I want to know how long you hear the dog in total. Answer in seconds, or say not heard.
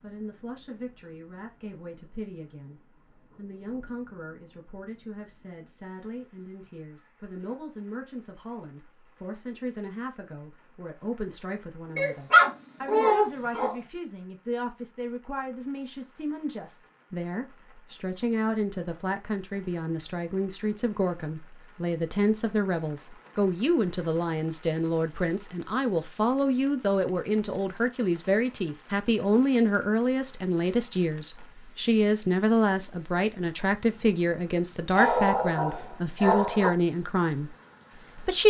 4 s.